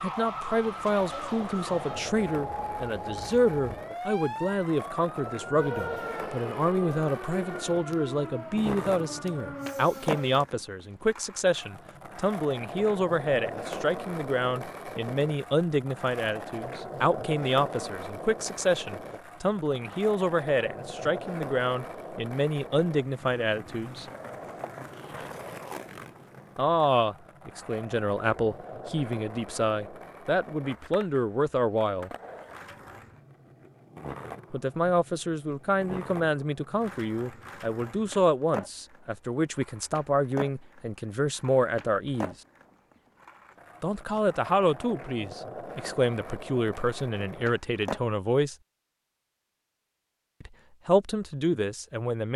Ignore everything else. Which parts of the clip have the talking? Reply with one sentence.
You can hear the talking from 0.0 to 24.1 s, from 26.6 to 32.1 s, from 34.5 to 42.4 s, from 43.8 to 48.5 s and from 50.4 to 52.3 s.